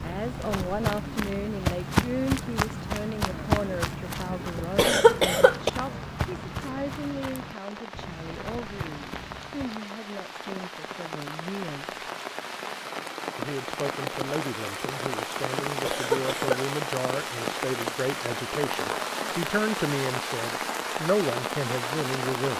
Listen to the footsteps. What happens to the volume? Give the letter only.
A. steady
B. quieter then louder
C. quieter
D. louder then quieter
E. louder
C.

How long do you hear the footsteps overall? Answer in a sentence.
You can hear the footsteps for 10 seconds altogether.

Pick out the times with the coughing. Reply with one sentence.
The coughing can be heard from 4.5 to 5.7 s and from 15.7 to 16.5 s.